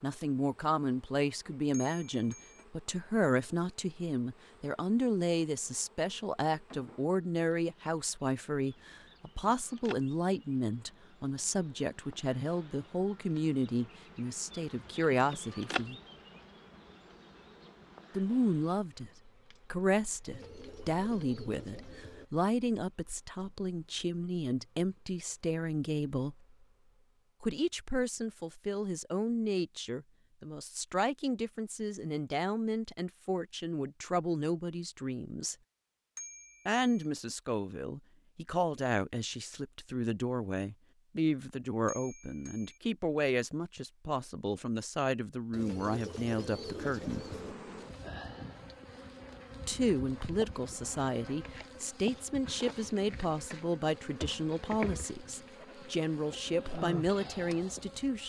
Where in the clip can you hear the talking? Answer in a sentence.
The talking can be heard from 0.0 to 15.9 s, from 18.1 to 19.1 s, from 19.7 to 26.4 s, from 27.4 to 35.5 s, from 36.6 to 47.2 s and from 49.6 to 58.2 s.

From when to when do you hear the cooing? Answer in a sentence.
You can hear the cooing from 20.2 to 22.2 s and from 45.5 to 47.5 s.